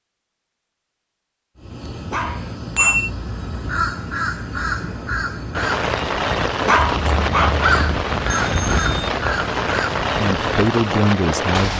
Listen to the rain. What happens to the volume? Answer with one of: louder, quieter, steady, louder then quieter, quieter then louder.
steady.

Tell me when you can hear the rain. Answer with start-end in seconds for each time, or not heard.
5.5-11.7.